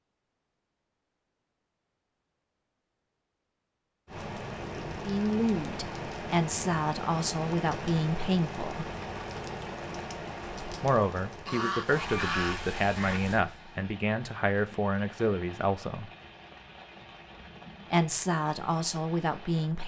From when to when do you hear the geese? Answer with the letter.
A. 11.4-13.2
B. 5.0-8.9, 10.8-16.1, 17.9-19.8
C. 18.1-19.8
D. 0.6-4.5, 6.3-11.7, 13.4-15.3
A.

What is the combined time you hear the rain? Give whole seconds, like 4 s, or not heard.
16 s.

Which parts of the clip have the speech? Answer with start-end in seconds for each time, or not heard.
5.0-8.9, 10.8-16.1, 17.9-19.8.